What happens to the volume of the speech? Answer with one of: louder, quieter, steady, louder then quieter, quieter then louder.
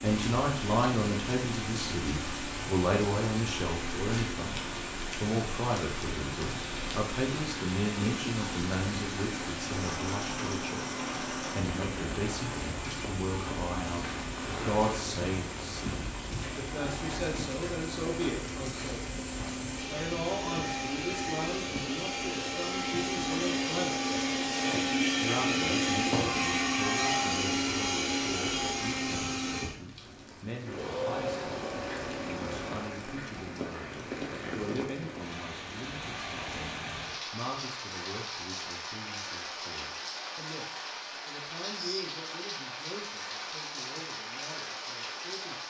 quieter.